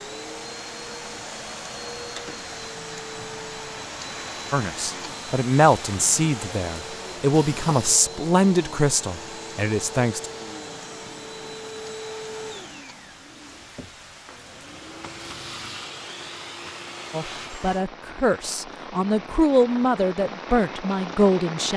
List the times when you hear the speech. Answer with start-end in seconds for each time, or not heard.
4.5-10.3, 17.1-21.7.